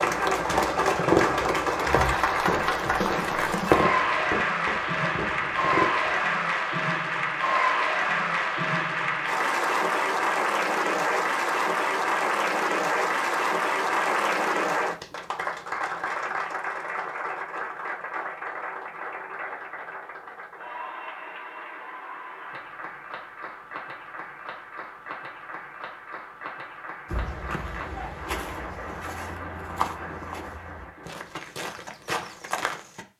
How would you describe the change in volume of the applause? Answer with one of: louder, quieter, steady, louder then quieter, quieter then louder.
quieter.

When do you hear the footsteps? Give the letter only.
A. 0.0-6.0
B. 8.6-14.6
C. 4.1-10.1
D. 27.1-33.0
D.